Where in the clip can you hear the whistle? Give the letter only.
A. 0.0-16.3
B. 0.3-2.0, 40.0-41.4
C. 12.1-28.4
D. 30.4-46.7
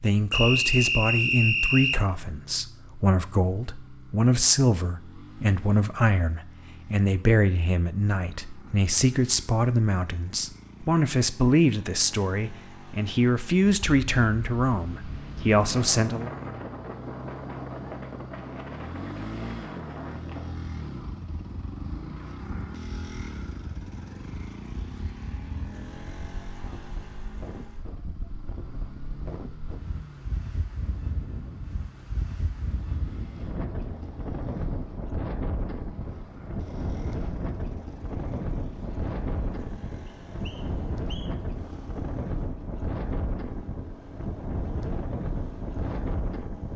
B.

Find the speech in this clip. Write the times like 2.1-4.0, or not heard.
0.0-16.3.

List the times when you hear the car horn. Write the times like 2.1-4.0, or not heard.
not heard.